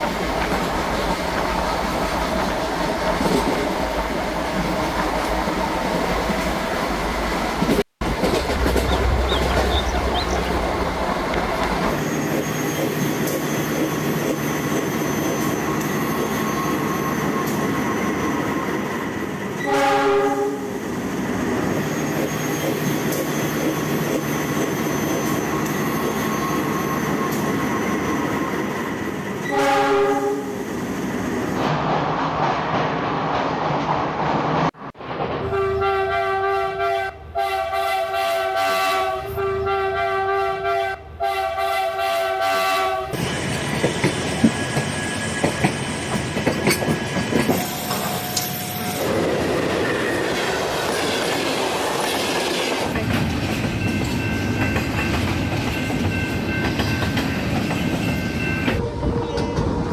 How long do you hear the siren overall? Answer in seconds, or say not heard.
not heard.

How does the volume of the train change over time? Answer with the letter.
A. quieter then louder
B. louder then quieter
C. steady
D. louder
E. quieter
C.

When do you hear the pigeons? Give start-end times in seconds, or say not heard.
8.6-11.0.